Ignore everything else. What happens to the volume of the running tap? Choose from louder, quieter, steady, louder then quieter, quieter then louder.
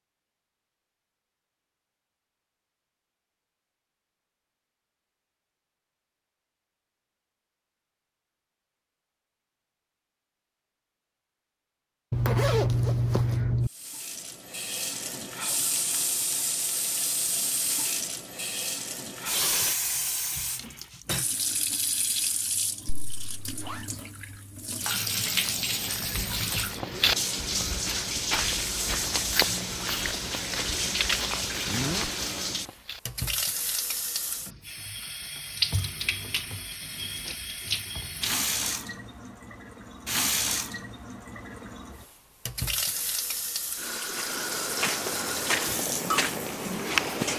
steady.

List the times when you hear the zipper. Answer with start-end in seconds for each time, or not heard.
12.1-13.7, 23.1-23.9, 31.6-32.1.